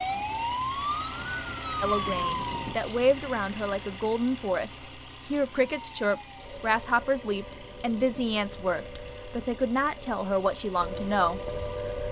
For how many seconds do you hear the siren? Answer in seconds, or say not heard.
9 s.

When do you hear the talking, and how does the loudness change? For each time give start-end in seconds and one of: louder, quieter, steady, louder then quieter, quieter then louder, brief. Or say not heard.
1.8-11.5 steady.